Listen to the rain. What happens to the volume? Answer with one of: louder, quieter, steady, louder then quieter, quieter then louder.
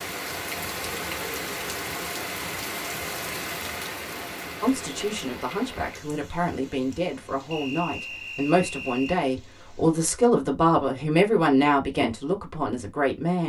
quieter.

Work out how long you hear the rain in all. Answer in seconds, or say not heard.
10 s.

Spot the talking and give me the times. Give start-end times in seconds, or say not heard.
4.6-13.4.